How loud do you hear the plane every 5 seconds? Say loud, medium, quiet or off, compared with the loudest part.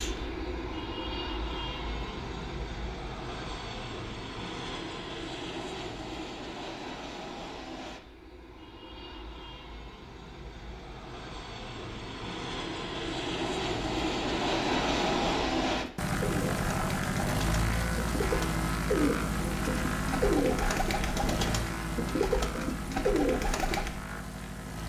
medium, medium, loud, loud, medium.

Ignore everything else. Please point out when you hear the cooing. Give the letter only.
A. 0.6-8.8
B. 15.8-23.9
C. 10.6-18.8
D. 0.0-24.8
B.